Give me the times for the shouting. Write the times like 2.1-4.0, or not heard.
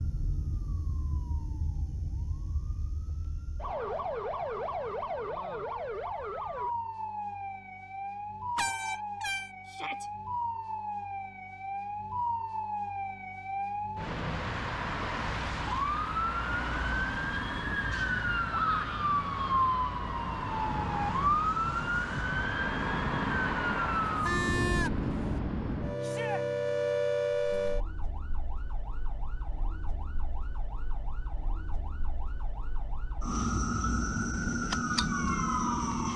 9.7-10.1, 18.5-19.1, 26.0-26.4.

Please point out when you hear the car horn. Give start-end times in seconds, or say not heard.
8.6-9.5, 23.9-25.4.